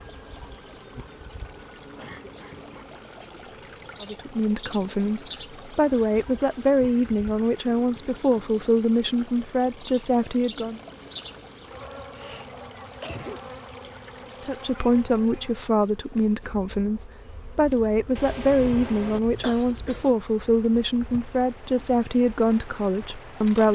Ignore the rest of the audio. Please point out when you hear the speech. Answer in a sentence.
You can hear the speech from 4.0 to 10.8 s and from 14.4 to 23.7 s.